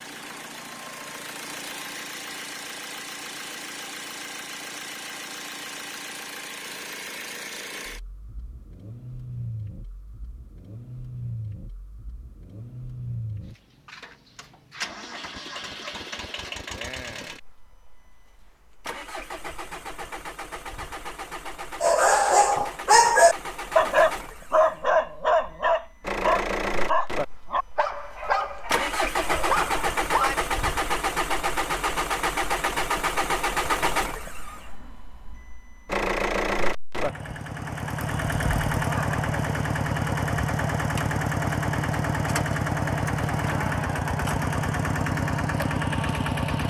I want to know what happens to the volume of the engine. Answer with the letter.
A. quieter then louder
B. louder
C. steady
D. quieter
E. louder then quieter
B.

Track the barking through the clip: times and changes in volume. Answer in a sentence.
You can hear the barking from 21.8 to 30.4 s, getting quieter.